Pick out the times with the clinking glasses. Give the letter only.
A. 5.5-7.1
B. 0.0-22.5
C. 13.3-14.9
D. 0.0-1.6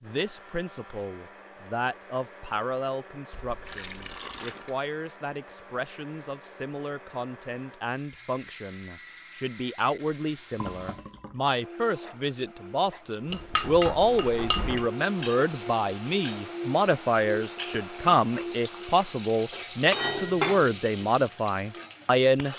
C.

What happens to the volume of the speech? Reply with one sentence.
The volume of the speech goes up.